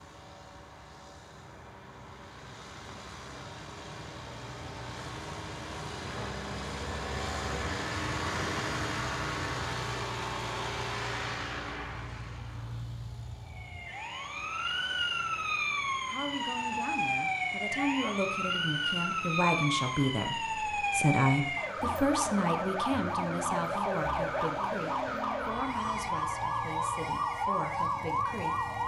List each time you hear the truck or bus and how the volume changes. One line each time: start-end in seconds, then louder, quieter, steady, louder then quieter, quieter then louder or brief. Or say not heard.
0.0-28.8 louder then quieter.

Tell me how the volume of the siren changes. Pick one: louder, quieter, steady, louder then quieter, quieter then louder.
steady.